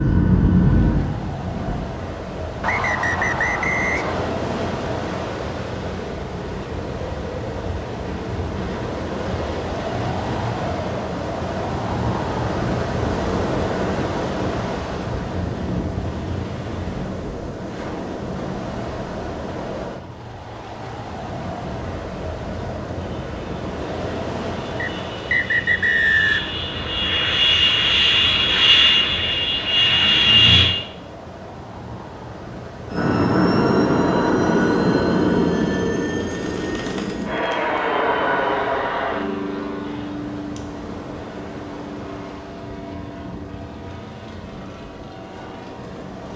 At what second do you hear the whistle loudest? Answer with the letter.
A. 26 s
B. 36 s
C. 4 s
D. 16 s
A.